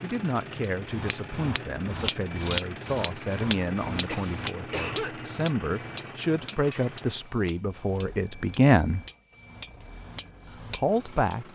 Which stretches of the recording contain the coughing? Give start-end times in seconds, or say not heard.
4.0-5.2.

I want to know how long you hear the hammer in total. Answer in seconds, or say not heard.
11 s.